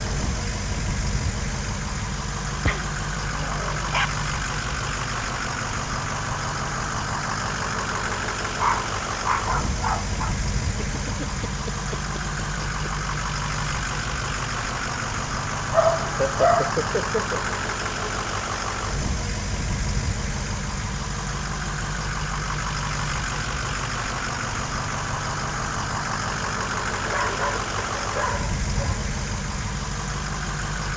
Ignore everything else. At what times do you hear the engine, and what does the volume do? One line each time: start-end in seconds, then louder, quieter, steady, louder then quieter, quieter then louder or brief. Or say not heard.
0.0-30.9 steady.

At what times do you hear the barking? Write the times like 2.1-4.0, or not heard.
2.6-4.0, 8.6-10.3, 15.7-16.7, 27.0-29.1.